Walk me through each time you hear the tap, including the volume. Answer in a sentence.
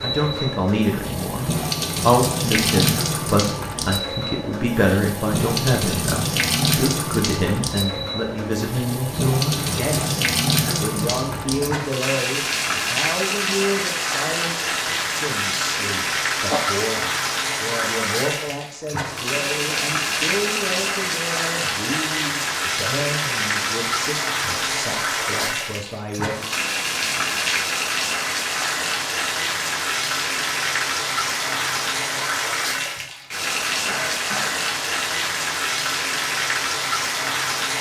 You can hear the tap from 0.0 to 37.7 s, at a steady volume.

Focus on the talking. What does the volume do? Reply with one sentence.
The loudness of the talking goes down.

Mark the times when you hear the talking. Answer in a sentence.
The talking can be heard from 0.0 to 26.5 s.